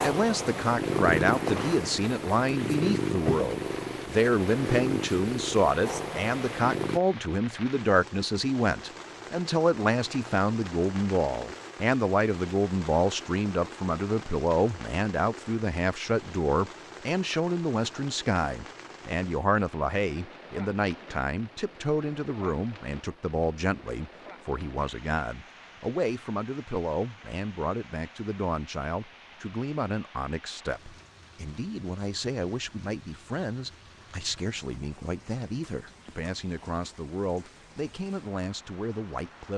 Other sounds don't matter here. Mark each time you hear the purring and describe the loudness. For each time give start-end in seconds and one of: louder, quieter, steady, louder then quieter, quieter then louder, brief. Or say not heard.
0.0-7.0 quieter.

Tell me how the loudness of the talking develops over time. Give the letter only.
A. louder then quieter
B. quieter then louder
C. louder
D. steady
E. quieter
E.